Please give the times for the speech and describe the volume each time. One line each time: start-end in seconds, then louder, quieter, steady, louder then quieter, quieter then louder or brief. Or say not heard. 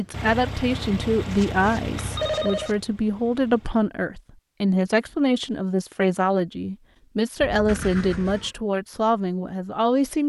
0.0-10.2 steady.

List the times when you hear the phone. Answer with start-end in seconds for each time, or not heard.
1.9-2.8, 7.4-8.3.